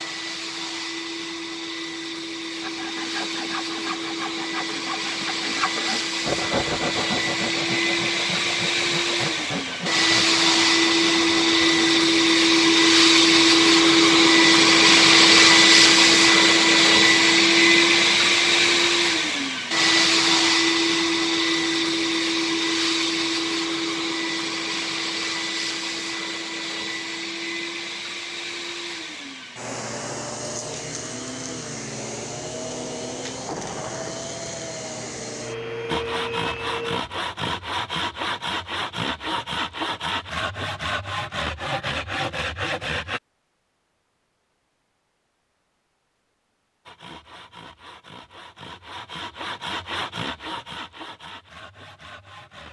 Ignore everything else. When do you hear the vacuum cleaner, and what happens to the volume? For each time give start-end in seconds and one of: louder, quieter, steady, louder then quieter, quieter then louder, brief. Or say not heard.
0.0-37.0 louder then quieter.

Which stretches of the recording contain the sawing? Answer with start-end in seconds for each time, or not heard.
2.5-12.0, 35.9-43.2, 46.9-52.6.